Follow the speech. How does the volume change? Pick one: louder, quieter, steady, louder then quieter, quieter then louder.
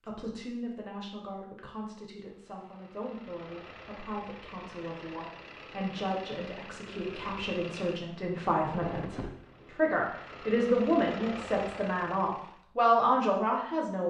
louder.